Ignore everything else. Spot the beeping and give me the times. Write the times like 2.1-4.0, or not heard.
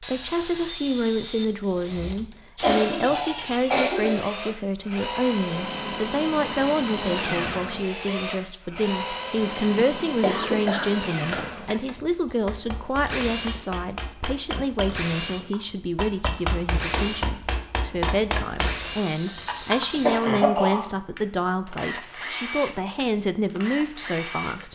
not heard.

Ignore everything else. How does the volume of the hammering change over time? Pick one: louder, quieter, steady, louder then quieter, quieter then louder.
louder.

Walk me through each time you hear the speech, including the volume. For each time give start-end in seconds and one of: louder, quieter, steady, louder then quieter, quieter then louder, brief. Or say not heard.
0.0-24.6 steady.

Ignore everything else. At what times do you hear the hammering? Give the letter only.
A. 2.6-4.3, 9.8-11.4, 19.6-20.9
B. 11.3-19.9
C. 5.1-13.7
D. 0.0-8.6
B.